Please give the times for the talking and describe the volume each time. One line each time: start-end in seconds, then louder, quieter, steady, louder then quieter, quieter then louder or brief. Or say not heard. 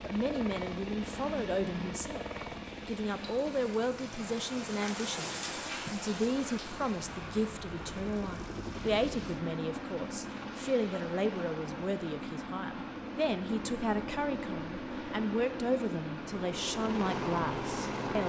0.0-2.2 brief
2.9-18.2 steady.